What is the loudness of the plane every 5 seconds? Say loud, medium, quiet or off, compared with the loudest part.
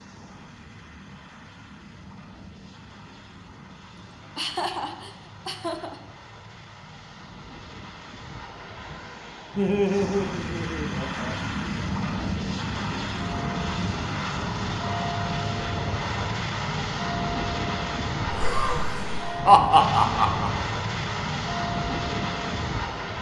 quiet, quiet, loud, loud, loud.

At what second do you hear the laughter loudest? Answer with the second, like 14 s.
20 s.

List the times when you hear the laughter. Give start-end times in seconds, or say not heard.
4.3-6.0, 9.6-11.4, 18.2-20.5.